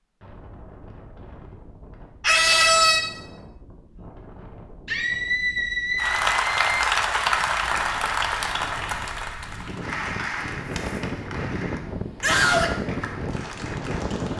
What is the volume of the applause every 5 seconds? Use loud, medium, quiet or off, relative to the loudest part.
off, loud, medium.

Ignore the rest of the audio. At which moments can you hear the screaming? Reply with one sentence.
You can hear the screaming from 2.2 to 3.0 s, from 4.8 to 6.7 s and from 12.2 to 12.8 s.